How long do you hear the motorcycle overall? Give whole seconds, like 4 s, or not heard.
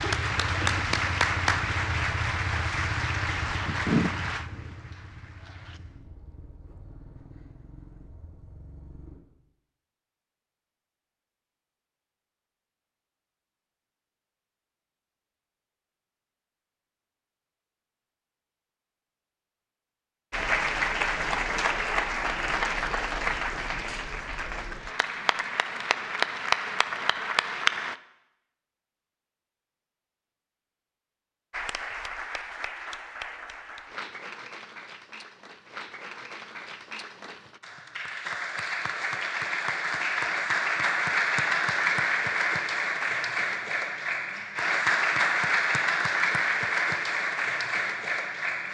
9 s.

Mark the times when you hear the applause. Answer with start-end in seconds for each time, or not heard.
0.0-5.8, 20.3-27.9, 31.5-48.6.